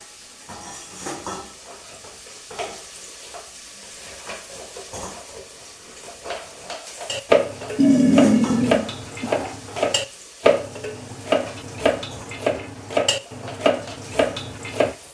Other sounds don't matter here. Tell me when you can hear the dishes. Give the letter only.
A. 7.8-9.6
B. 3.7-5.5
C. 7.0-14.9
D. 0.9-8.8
C.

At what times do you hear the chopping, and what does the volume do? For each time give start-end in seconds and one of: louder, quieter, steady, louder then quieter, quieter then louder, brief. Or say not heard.
not heard.